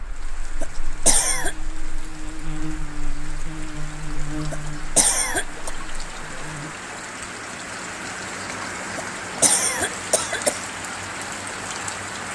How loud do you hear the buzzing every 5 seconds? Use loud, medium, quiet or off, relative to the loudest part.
loud, medium, off.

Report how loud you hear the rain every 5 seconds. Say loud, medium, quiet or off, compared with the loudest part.
medium, loud, loud.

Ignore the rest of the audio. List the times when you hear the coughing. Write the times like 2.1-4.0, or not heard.
0.6-1.6, 4.5-5.7, 8.9-10.6.